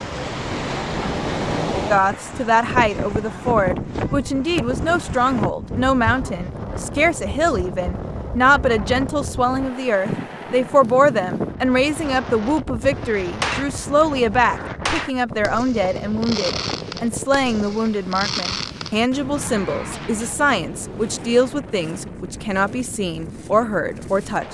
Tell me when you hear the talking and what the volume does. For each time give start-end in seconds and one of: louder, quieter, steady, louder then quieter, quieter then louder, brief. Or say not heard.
1.9-24.4 steady.